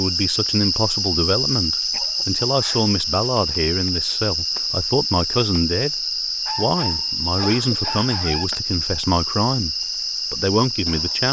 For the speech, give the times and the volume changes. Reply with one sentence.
The speech can be heard from 0.0 to 11.2 s, at a steady volume.